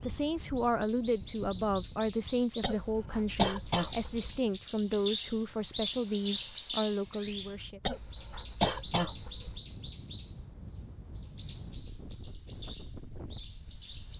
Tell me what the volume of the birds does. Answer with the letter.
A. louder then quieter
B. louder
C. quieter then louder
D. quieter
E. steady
A.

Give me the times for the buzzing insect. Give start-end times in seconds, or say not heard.
not heard.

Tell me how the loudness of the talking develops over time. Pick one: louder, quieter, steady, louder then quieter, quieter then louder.
steady.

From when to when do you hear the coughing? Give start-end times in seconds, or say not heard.
2.6-4.4, 7.8-9.6.